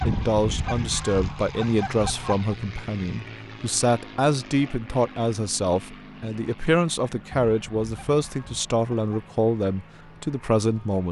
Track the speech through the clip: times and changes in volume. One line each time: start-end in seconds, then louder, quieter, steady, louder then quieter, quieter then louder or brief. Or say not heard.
0.1-11.0 steady.